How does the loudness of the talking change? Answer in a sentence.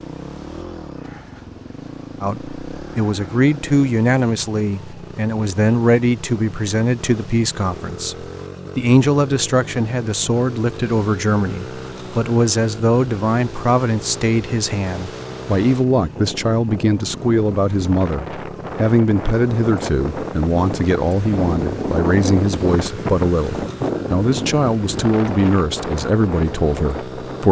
The volume of the talking stays about the same.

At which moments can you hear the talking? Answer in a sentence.
The talking can be heard from 2.2 to 27.4 s.